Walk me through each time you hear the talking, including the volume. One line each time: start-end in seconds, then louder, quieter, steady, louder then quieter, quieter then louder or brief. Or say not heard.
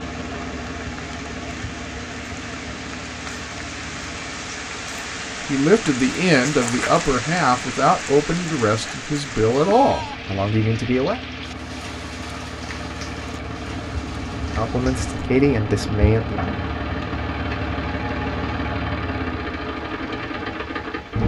5.5-11.2 steady
14.6-16.4 brief.